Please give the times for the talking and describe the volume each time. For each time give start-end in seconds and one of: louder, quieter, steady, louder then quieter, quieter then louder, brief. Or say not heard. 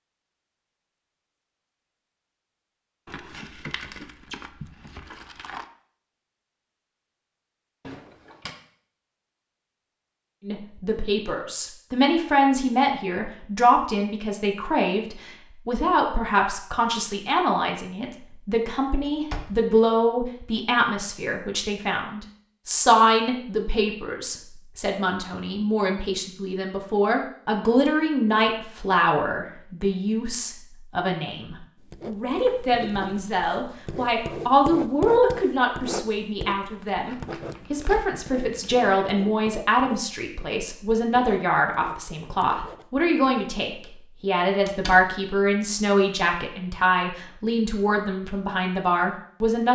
10.4-49.7 steady.